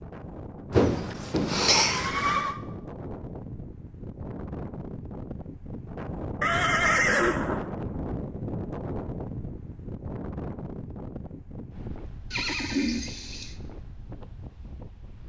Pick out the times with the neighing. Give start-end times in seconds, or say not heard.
0.7-2.6, 6.4-7.7, 12.3-13.6.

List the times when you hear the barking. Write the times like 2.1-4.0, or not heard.
not heard.